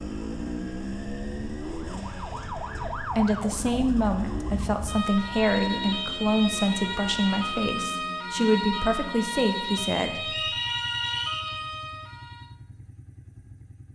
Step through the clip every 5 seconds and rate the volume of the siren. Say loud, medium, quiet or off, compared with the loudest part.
medium, loud, loud.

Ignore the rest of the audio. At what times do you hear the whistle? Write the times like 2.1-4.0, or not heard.
10.2-11.5.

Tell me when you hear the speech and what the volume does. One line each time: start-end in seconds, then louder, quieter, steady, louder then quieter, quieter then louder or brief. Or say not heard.
3.0-10.3 steady.